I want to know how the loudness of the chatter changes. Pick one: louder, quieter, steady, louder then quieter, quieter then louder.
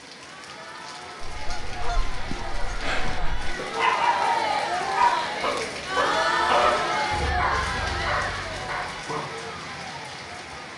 louder then quieter.